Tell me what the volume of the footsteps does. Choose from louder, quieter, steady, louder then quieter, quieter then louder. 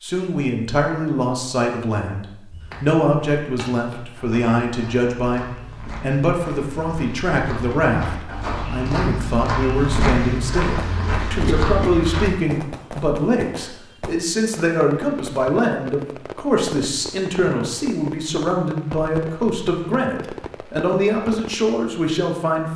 louder.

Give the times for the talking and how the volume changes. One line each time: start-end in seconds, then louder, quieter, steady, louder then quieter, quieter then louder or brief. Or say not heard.
0.0-22.7 steady.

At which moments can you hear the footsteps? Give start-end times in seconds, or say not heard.
2.5-12.3.